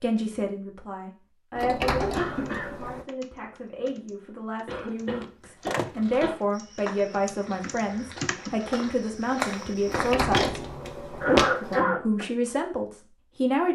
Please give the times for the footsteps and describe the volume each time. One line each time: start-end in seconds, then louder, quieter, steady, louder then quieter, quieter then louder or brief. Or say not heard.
5.5-11.6 quieter then louder.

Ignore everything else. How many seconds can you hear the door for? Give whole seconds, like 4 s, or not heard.
5 s.